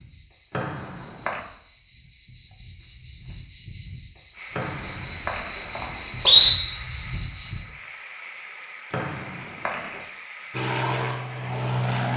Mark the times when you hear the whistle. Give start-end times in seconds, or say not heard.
0.5-1.4, 4.5-6.5, 8.9-9.8.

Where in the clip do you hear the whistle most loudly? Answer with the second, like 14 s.
6 s.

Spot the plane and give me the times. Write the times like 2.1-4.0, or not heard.
10.5-12.1.